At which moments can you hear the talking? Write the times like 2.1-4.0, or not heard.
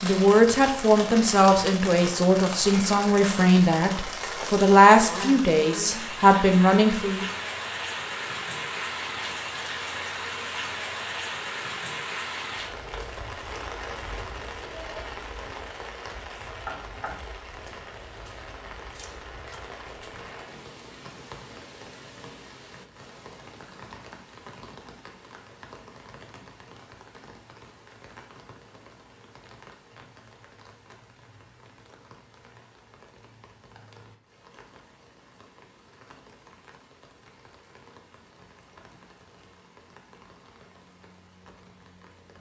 0.0-7.2.